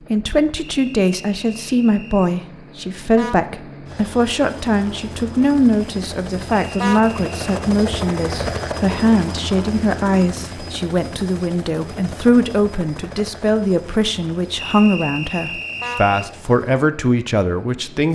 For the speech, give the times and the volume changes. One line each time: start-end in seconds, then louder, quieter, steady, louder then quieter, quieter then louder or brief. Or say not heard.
0.1-18.1 steady.